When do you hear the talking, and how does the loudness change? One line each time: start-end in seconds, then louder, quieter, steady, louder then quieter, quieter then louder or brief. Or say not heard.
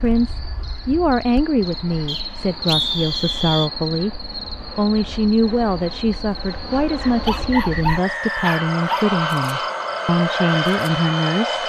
0.0-11.6 steady.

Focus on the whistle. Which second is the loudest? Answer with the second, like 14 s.
3 s.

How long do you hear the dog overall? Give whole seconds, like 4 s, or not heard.
2 s.